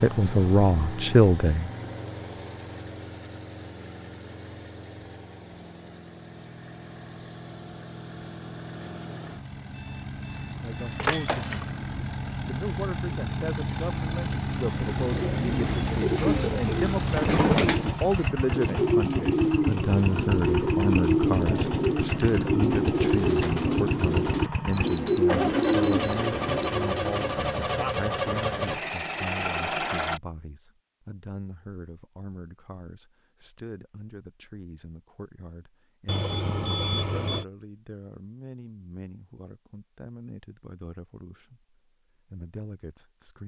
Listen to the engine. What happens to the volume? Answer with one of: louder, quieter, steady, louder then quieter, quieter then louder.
louder.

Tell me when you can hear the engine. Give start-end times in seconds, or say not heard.
0.0-30.2.